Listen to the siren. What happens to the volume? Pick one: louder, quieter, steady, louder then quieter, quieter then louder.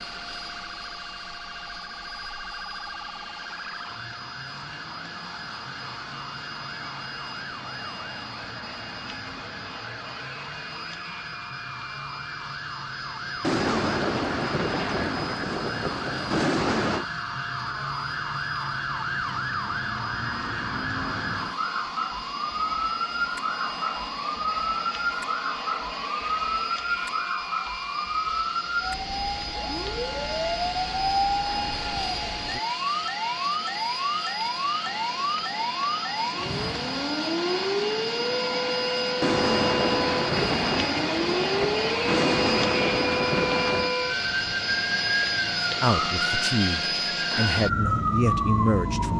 louder.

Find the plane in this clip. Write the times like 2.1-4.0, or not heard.
0.0-49.1.